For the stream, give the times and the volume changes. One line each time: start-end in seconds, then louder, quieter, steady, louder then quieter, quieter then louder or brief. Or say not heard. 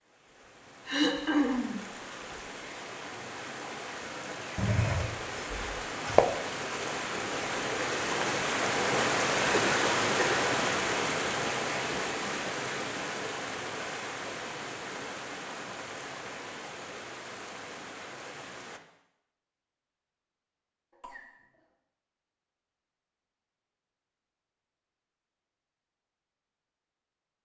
0.0-18.8 louder then quieter.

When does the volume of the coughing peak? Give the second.
1 s.